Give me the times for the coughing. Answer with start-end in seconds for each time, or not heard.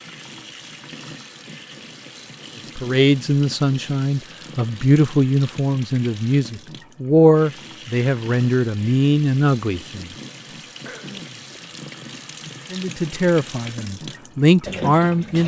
10.8-11.4.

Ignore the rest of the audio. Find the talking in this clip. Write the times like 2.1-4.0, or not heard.
2.8-10.1, 12.7-15.4.